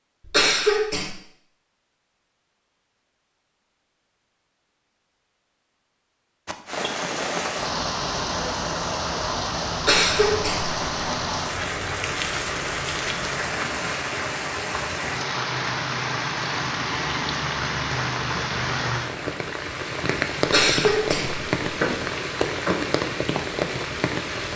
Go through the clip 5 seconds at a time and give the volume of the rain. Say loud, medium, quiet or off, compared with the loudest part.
off, loud, loud, loud, loud.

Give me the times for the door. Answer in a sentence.
The door can be heard from 21.6 to 23.0 s.